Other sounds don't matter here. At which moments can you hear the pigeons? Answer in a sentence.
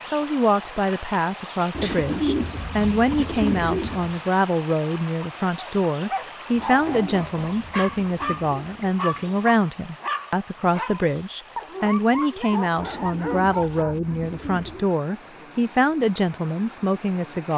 You can hear the pigeons from 1.7 to 4.2 s, from 6.5 to 9.4 s and from 12.8 to 14.8 s.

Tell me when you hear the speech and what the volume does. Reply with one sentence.
You can hear the speech from 0.1 to 17.5 s, at a steady volume.